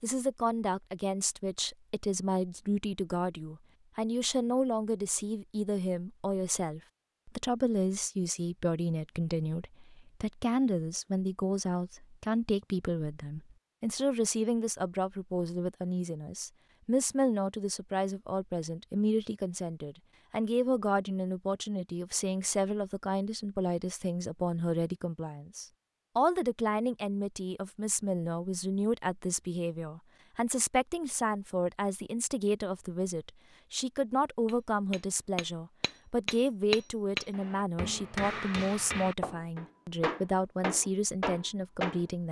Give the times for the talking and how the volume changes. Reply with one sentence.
You can hear the talking from 0.0 to 42.2 s, at a steady volume.